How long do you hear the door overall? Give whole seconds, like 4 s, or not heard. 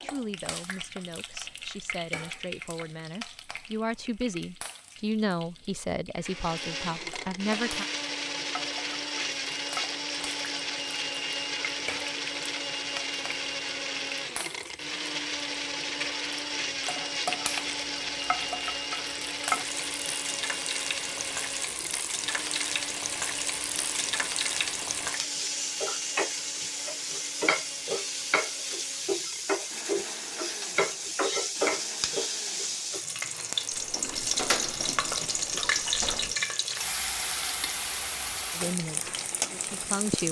3 s.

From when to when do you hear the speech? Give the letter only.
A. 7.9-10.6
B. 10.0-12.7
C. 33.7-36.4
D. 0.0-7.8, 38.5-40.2
D.